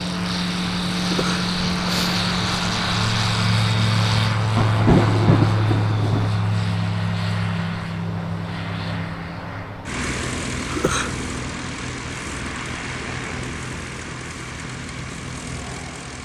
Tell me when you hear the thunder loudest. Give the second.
5 s.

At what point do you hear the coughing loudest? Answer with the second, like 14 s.
11 s.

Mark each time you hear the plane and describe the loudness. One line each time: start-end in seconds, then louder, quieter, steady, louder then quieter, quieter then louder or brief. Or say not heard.
0.0-16.1 quieter.